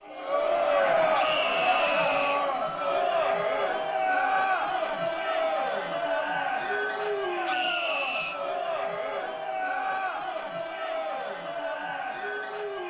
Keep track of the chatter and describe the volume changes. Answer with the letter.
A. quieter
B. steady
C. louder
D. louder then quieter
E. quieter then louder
A.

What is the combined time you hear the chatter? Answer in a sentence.
You can hear the chatter for 13 seconds altogether.